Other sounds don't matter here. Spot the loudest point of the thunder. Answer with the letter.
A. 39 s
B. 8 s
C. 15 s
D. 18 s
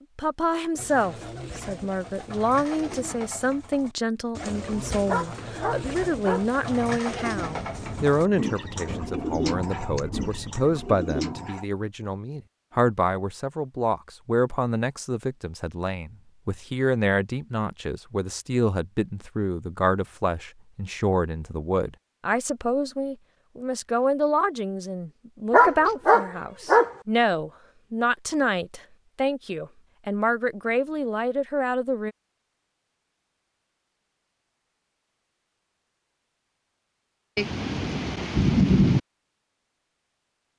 A.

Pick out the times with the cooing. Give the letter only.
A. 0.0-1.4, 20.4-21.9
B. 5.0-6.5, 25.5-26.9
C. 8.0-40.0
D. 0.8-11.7
D.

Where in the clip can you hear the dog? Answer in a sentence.
The dog can be heard from 5.0 to 6.5 s and from 25.5 to 26.9 s.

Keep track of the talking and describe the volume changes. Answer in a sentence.
The volume of the talking stays about the same.